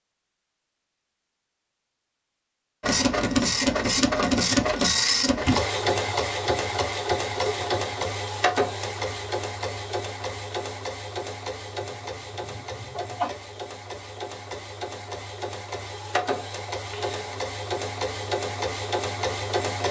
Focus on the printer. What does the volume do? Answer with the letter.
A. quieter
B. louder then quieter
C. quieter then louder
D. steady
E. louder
C.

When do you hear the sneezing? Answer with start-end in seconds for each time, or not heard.
12.0-13.3.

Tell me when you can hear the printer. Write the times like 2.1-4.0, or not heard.
2.8-19.8.